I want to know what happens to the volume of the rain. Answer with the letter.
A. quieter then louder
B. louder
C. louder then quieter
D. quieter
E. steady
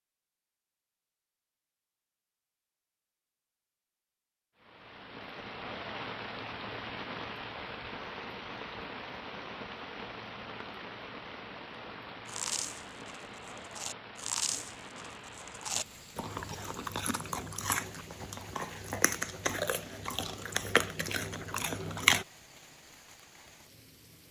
D.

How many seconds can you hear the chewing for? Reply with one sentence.
You can hear the chewing for 10 seconds altogether.